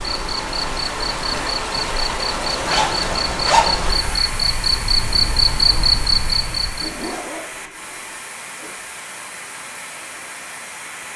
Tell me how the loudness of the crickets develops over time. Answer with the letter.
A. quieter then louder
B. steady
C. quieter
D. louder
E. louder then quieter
D.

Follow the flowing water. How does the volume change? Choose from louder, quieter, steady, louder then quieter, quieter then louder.
quieter.